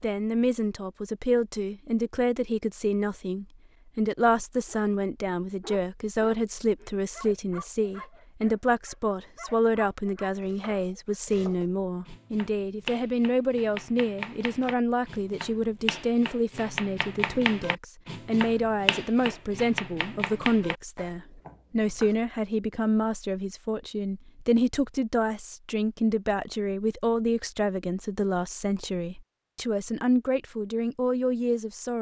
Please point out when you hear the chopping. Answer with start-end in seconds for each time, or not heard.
10.4-22.1.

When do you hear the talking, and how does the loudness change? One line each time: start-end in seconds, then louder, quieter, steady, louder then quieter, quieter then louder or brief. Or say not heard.
0.0-31.9 steady.